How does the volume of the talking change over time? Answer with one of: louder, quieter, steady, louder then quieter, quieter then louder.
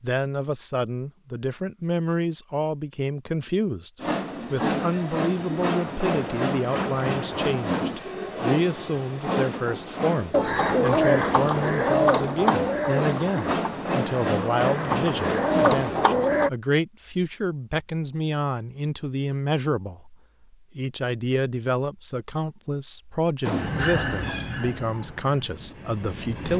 steady.